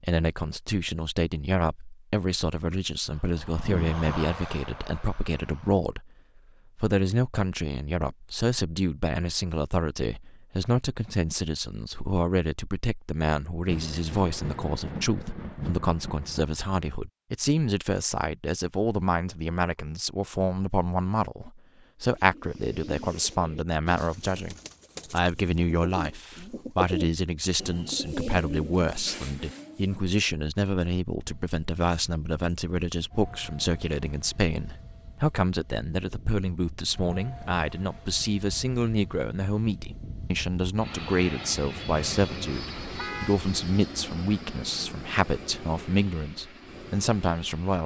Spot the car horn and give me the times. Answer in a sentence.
The car horn can be heard from 42.5 to 43.4 s.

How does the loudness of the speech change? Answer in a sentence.
The volume of the speech stays about the same.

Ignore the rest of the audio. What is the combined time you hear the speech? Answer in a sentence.
The speech can be heard for 47 seconds in total.